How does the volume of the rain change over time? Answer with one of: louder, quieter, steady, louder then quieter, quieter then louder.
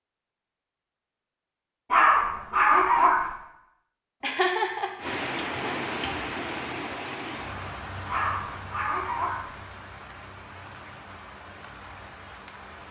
quieter.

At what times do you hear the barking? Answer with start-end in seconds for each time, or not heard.
1.9-3.4, 8.1-9.5.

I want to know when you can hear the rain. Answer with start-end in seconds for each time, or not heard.
5.0-12.8.